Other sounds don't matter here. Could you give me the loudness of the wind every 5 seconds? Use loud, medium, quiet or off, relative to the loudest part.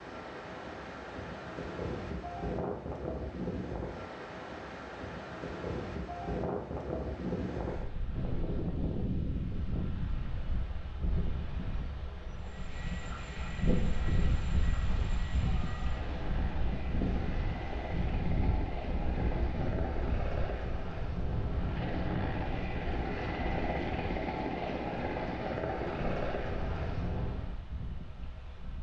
loud, loud, loud, loud, medium, medium.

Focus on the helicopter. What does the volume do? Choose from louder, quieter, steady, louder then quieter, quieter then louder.
louder.